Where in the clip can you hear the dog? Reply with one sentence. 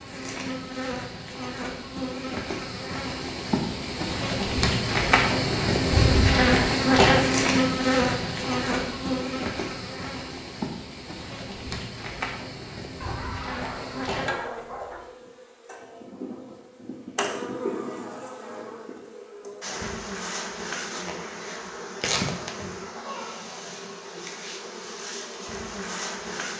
The dog can be heard from 13.0 to 15.0 s.